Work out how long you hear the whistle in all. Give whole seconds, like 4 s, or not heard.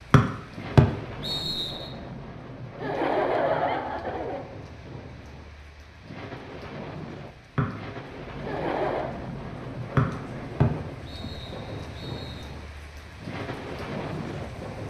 5 s.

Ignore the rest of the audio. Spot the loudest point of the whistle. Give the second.
1 s.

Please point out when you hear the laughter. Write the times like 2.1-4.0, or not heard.
2.8-4.5, 8.4-9.2.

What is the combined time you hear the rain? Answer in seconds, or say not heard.
15 s.